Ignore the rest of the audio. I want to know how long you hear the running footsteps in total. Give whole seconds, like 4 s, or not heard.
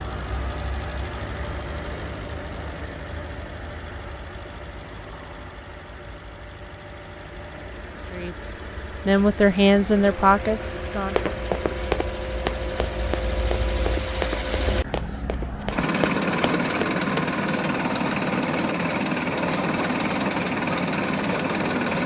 6 s.